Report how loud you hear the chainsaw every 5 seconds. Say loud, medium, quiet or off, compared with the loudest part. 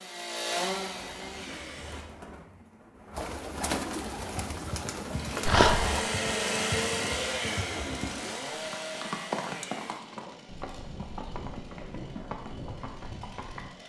loud, loud, quiet.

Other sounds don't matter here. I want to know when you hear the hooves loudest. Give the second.
9 s.